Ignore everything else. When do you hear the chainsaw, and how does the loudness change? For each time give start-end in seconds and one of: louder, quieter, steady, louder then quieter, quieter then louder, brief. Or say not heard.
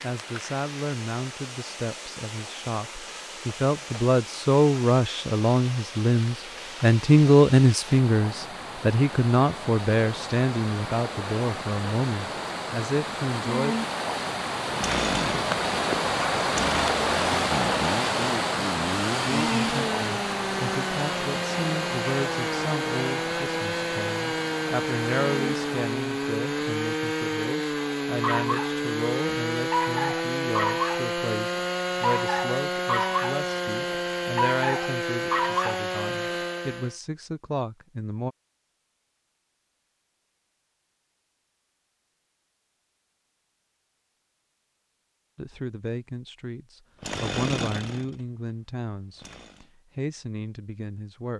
14.7-37.0 steady
47.0-49.7 brief.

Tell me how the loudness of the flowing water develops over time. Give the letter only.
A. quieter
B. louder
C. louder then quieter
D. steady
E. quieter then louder
C.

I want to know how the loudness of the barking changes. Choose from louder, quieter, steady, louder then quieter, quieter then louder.
steady.